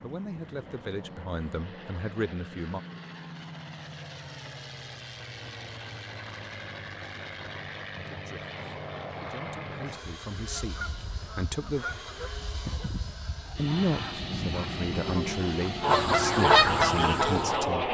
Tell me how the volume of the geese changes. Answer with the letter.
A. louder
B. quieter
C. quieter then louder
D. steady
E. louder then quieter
A.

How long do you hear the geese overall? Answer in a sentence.
You can hear the geese for 7 seconds altogether.